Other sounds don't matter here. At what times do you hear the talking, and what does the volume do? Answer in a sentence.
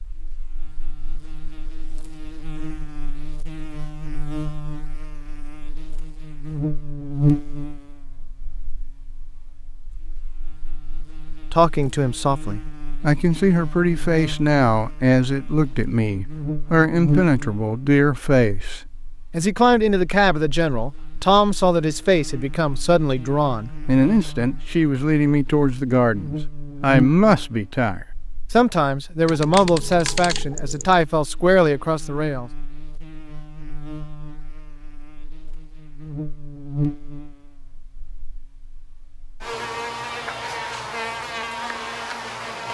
You can hear the talking from 11.3 to 32.5 s, at a steady volume.